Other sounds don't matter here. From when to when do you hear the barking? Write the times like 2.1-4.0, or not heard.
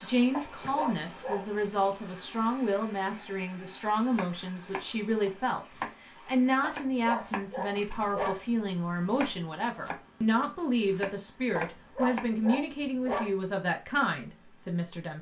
0.3-1.6, 6.6-8.4, 11.6-13.3.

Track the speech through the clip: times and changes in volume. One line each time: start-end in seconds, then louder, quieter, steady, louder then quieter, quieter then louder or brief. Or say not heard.
0.0-15.1 steady.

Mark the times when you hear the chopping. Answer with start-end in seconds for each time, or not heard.
4.1-8.2, 9.1-12.3.